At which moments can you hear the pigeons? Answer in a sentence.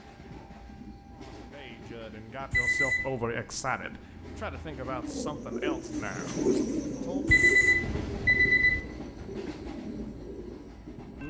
You can hear the pigeons from 4.8 to 10.8 s.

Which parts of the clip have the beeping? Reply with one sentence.
You can hear the beeping from 2.5 to 3.1 s and from 7.2 to 8.8 s.